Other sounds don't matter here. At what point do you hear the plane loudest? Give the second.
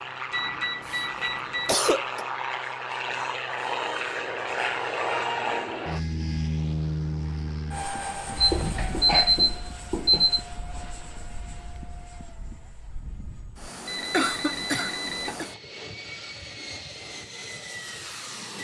5 s.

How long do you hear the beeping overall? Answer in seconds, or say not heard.
5 s.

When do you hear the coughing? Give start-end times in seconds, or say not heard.
0.8-2.2, 8.8-9.4, 14.1-15.4.